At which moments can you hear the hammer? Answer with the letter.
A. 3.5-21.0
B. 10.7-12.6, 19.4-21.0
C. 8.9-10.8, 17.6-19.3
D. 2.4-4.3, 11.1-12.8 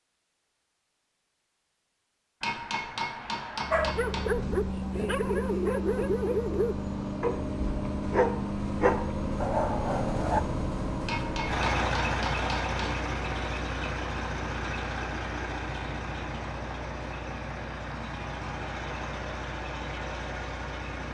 D.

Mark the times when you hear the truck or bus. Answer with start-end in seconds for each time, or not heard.
3.5-21.0.